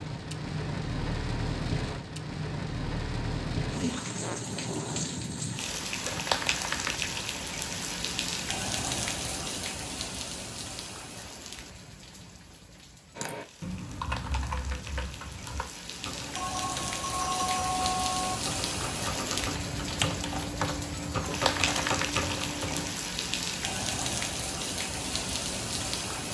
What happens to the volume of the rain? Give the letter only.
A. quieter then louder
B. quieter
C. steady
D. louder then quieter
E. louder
A.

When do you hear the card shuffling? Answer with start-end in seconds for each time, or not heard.
not heard.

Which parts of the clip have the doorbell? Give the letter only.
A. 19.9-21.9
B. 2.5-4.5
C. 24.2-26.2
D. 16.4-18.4
D.